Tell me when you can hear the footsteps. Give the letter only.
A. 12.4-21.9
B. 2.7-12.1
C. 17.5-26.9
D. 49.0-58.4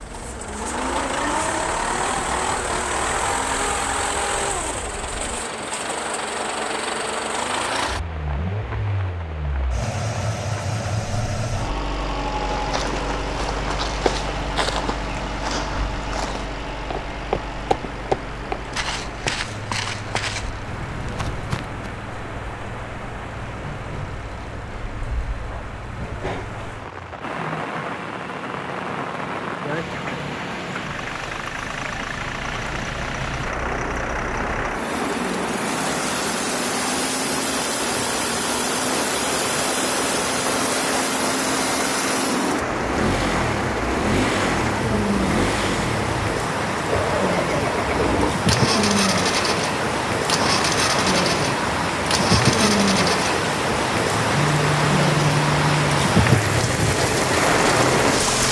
A.